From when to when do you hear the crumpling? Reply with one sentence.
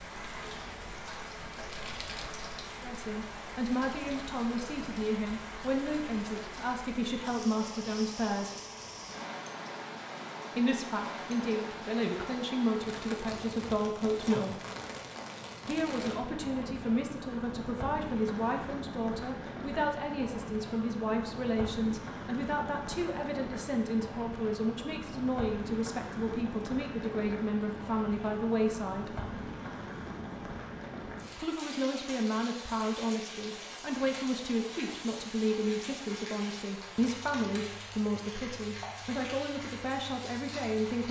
You can hear the crumpling from 1.5 to 2.5 s.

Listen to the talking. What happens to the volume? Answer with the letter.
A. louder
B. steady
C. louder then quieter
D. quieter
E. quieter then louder
B.